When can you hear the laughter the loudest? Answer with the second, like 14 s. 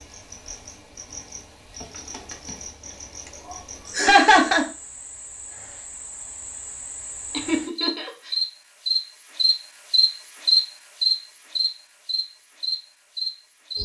4 s.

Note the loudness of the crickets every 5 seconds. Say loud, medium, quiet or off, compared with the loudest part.
quiet, medium, loud.